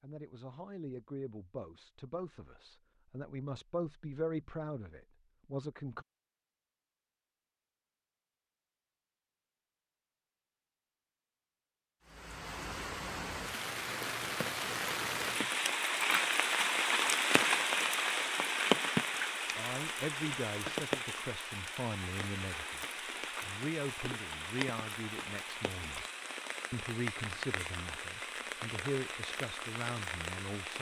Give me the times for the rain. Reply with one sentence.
You can hear the rain from 12.1 to 30.7 s.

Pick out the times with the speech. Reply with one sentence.
The speech can be heard from 0.0 to 6.0 s, from 19.6 to 26.1 s and from 26.7 to 30.7 s.